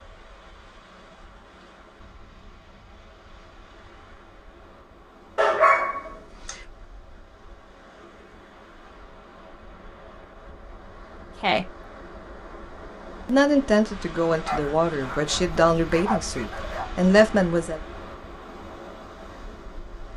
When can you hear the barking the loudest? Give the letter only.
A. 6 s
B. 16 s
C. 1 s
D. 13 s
A.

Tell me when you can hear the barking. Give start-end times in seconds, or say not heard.
5.3-6.6, 14.3-16.9.